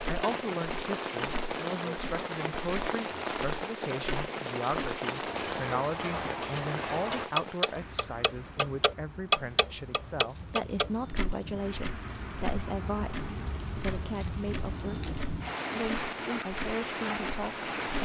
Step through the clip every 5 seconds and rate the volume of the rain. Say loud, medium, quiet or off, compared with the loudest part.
loud, medium, medium, loud.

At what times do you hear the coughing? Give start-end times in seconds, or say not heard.
not heard.